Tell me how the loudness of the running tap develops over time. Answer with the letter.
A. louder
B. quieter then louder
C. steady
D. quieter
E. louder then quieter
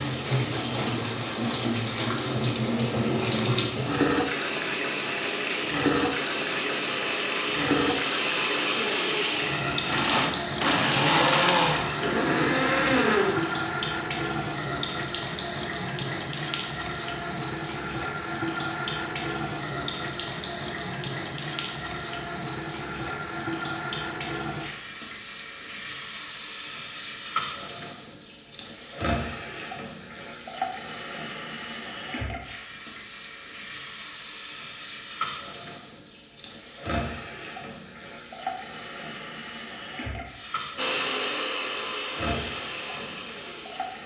D.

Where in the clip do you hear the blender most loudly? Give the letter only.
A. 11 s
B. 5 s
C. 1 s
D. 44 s
A.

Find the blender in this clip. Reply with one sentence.
You can hear the blender from 0.0 to 13.7 s and from 40.8 to 44.0 s.